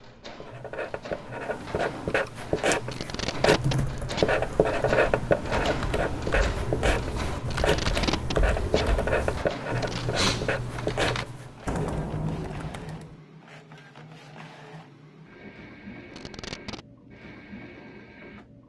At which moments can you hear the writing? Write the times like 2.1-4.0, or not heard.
0.4-11.9.